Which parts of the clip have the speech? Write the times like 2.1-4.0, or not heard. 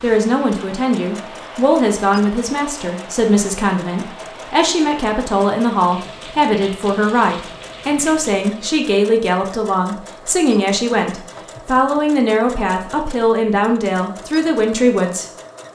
0.0-15.7.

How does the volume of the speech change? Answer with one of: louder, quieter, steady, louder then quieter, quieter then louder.
steady.